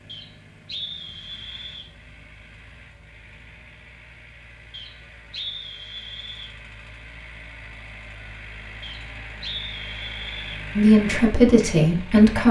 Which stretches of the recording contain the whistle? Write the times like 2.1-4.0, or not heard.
0.1-1.9, 4.7-6.5, 8.8-10.6.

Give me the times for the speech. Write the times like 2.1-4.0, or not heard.
10.8-12.4.